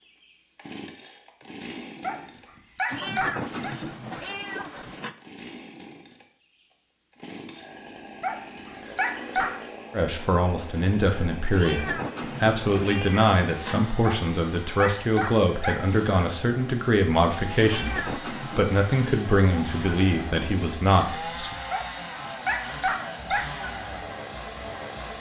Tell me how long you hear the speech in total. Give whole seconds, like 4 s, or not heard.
12 s.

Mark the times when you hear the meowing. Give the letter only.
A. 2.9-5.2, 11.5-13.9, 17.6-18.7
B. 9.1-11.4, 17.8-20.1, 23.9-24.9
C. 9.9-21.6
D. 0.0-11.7
A.